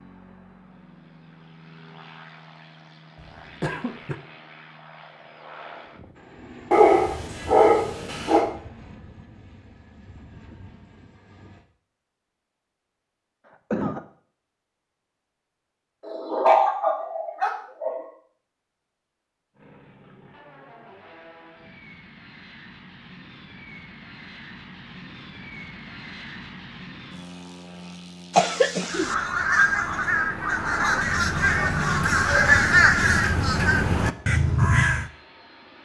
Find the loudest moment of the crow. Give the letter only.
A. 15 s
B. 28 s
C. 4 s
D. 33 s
D.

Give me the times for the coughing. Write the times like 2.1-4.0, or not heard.
3.1-4.2, 13.5-14.0, 28.4-29.1.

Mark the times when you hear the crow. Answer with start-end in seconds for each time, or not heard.
28.8-35.1.